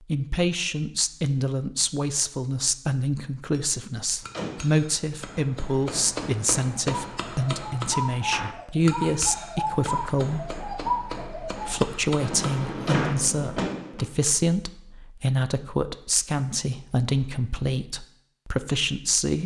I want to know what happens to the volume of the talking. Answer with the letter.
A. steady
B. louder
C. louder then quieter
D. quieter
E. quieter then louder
A.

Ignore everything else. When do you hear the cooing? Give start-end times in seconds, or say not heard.
6.7-14.2.